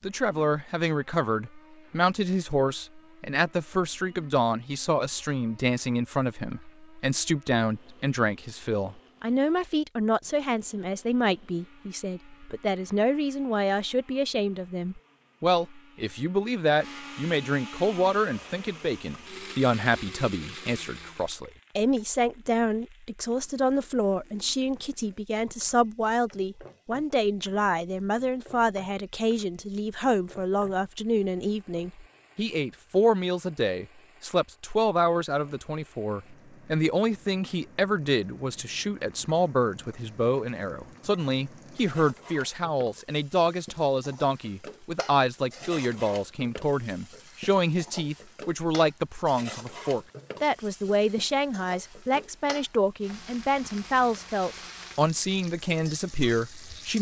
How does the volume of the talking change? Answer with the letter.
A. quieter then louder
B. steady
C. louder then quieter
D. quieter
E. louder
B.